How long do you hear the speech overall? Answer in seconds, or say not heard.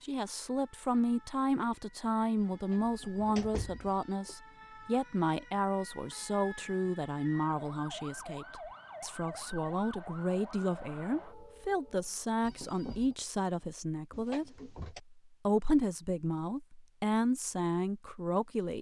19 s.